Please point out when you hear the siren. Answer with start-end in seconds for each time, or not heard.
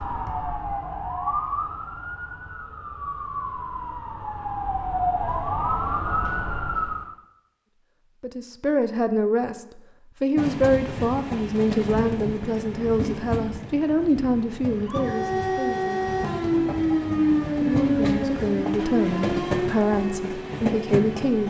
0.0-7.1, 14.8-21.4.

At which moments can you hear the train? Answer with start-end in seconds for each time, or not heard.
10.3-21.4.